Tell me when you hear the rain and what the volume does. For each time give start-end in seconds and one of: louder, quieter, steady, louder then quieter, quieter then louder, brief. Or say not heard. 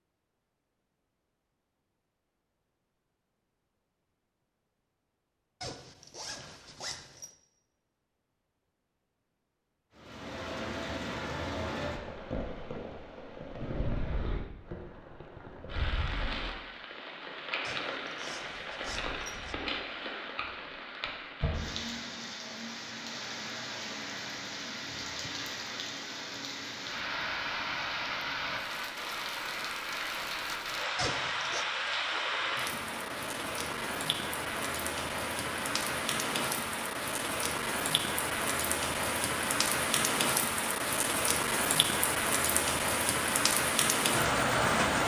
9.9-45.0 louder.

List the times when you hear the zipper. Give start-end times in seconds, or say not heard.
5.6-7.3, 17.6-19.6, 30.9-31.6.